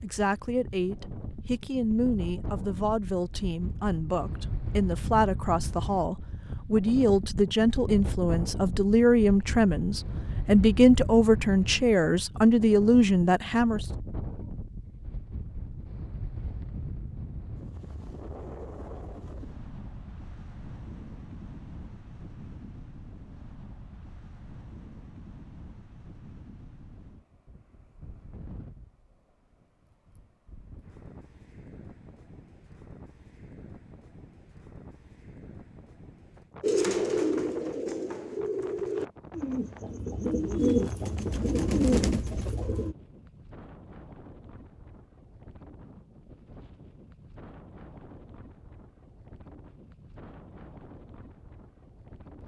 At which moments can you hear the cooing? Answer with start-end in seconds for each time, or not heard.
36.6-43.0.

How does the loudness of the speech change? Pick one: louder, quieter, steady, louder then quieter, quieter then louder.
louder.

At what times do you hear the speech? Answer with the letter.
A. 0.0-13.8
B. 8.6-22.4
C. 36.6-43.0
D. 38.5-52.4
A.